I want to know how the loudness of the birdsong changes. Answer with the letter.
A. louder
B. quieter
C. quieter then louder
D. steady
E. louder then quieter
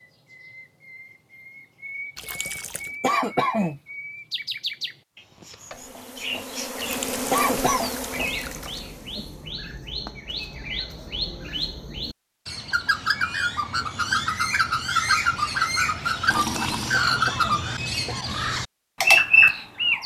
A.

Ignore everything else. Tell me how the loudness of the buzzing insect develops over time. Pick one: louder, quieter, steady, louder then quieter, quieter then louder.
louder then quieter.